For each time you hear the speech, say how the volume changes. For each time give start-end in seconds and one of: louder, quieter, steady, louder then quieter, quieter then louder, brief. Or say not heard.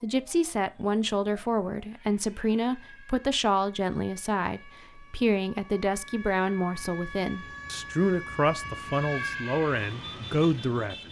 0.0-10.9 steady.